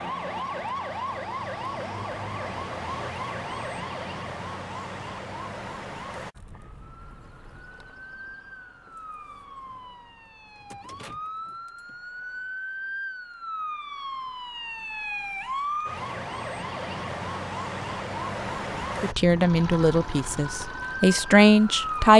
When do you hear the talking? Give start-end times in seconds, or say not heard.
19.0-22.1.